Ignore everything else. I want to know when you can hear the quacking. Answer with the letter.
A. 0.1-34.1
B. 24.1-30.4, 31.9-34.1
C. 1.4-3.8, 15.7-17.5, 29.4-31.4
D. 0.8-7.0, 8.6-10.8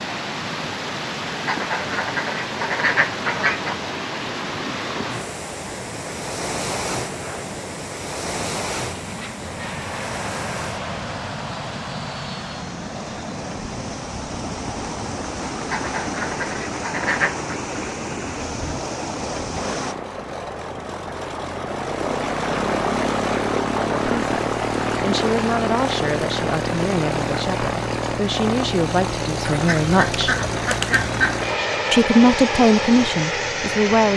C.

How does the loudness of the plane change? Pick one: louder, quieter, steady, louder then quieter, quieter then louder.
louder.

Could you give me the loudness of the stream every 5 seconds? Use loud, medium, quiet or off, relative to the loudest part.
loud, loud, medium, loud, off, off, off.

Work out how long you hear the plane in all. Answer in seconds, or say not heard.
34 s.